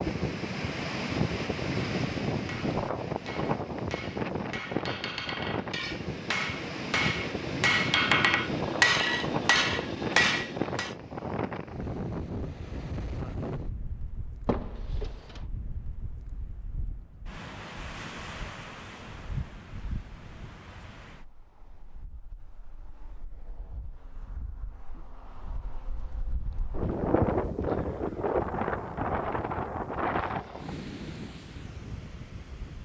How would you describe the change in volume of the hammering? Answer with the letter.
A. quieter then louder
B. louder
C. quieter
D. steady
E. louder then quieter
B.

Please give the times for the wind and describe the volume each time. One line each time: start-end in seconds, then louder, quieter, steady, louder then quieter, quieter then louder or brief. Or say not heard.
0.0-32.7 quieter then louder.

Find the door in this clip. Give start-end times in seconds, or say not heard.
14.4-15.4.